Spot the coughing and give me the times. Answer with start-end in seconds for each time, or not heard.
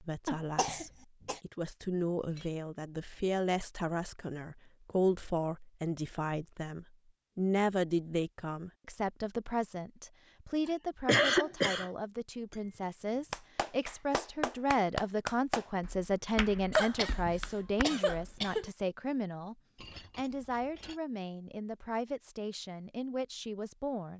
0.2-1.4, 11.1-11.9, 16.7-18.7.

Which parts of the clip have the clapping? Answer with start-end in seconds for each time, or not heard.
13.3-18.4.